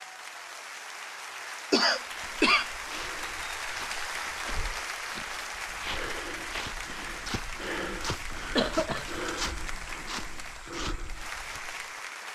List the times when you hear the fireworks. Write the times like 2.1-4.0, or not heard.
not heard.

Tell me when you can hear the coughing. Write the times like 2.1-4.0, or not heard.
1.7-2.7, 8.6-9.1.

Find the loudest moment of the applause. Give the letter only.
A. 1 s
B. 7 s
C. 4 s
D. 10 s
C.